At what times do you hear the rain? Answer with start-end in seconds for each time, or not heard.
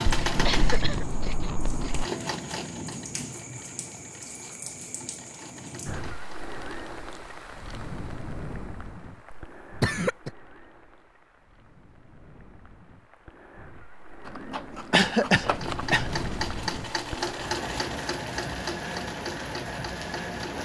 0.0-20.6.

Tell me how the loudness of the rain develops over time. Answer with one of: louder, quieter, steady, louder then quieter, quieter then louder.
quieter then louder.